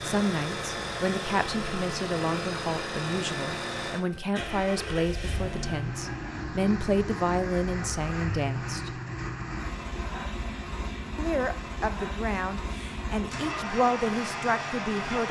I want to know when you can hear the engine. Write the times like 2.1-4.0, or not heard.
0.0-15.2.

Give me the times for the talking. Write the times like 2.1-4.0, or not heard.
0.0-9.0, 11.2-15.2.